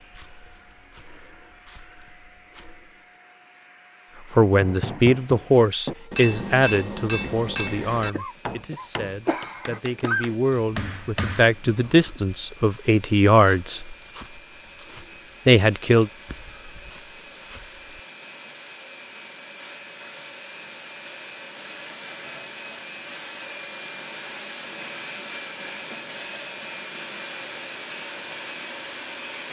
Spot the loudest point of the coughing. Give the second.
10 s.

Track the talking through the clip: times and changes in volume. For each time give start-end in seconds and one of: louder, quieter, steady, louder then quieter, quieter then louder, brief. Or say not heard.
4.3-13.9 quieter then louder
15.4-16.1 brief.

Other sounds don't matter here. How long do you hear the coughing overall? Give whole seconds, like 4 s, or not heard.
2 s.